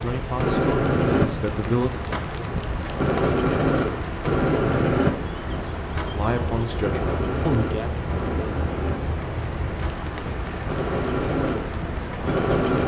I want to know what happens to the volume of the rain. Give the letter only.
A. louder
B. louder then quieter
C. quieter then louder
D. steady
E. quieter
D.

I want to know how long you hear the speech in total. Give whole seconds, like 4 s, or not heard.
4 s.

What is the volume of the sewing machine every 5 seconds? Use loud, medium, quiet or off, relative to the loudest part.
loud, medium, loud.